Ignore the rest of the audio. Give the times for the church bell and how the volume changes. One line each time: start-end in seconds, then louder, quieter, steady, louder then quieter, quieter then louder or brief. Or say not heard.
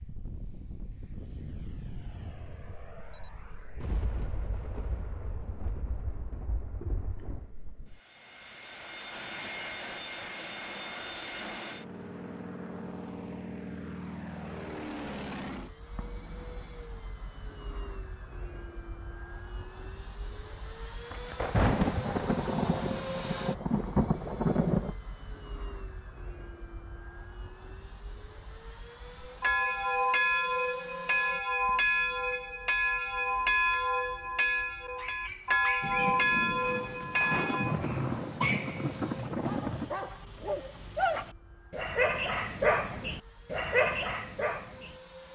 29.2-37.8 steady.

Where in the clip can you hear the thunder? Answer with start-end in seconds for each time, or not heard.
3.8-7.5, 21.1-24.9, 35.8-39.9.